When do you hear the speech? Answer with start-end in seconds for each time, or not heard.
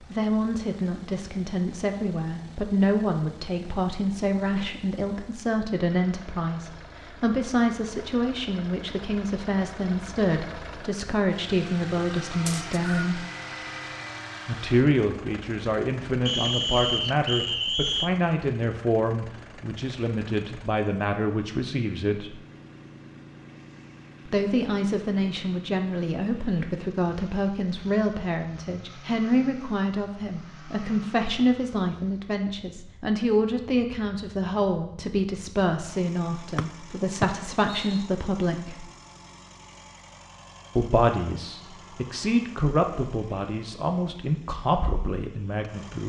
0.0-13.2, 14.4-22.4, 24.2-38.9, 40.8-46.0.